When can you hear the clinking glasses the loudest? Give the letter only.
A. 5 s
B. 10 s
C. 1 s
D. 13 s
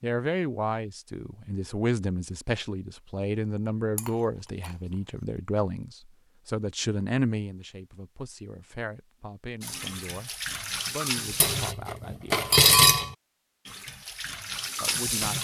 D.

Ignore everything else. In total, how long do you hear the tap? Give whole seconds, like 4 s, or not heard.
4 s.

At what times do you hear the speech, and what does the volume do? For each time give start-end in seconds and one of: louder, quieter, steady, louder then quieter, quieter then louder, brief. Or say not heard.
0.0-12.5 quieter
14.8-15.4 brief.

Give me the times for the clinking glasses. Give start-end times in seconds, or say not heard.
4.0-4.8, 11.4-13.2.